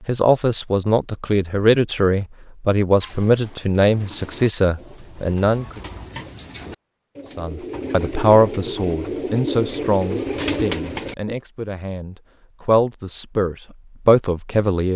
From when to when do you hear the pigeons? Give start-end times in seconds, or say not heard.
3.0-11.3.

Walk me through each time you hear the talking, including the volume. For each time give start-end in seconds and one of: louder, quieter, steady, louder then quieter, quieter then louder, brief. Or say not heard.
0.1-5.8 steady
7.3-14.9 quieter then louder.